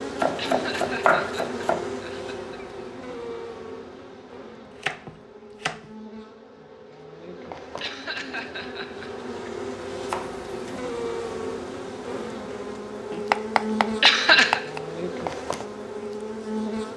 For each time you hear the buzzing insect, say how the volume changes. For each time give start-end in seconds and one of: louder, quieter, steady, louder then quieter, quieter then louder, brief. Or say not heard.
0.0-16.9 quieter then louder.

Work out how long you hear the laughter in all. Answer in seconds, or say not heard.
4 s.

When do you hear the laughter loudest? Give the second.
14 s.